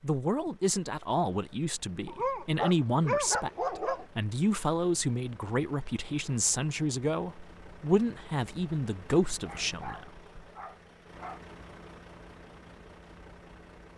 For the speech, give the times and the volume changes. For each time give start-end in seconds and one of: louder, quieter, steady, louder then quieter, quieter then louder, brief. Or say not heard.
0.0-10.1 steady.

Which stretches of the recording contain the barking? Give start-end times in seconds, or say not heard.
2.0-4.0, 9.4-11.4.